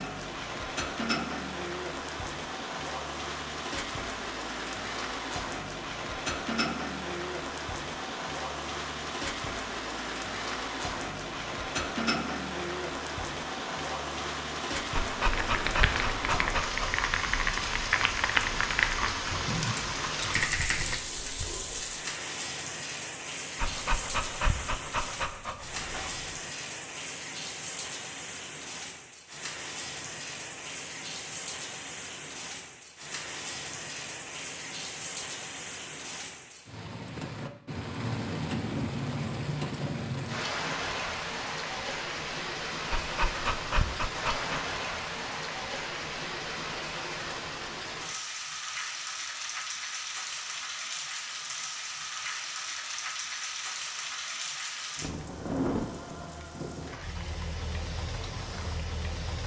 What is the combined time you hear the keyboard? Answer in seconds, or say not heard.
6 s.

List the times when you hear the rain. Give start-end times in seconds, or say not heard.
0.0-59.4.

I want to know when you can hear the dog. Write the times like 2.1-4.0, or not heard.
14.9-17.0, 23.6-26.3, 42.9-44.6.